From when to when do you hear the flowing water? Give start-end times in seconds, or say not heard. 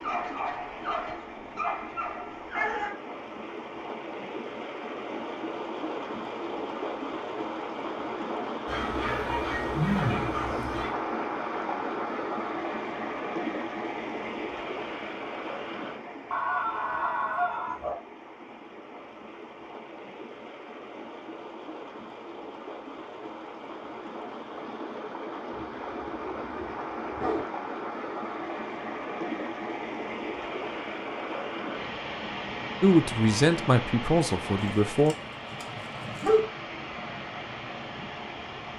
0.0-38.7.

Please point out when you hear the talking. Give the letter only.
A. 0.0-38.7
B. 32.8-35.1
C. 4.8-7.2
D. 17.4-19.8
B.